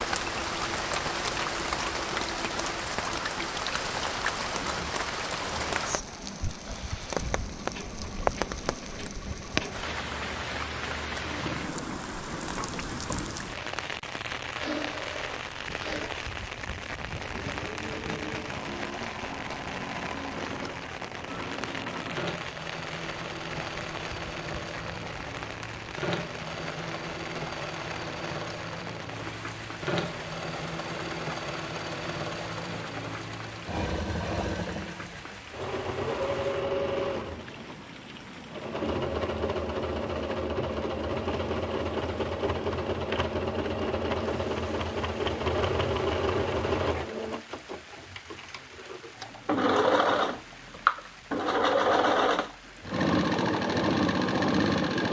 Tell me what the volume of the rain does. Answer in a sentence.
The volume of the rain goes down.